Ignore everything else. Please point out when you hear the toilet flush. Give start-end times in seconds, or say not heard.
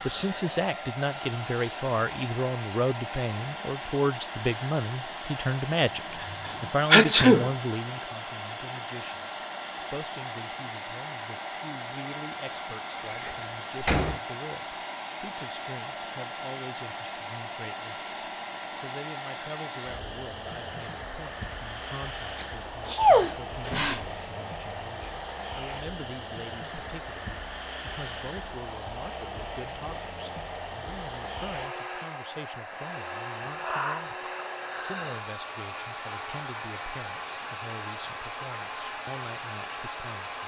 not heard.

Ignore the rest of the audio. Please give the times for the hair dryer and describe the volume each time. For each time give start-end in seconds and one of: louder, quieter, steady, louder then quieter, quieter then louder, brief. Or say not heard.
0.0-40.4 steady.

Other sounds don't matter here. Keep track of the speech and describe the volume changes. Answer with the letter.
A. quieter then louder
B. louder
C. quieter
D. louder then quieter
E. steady
C.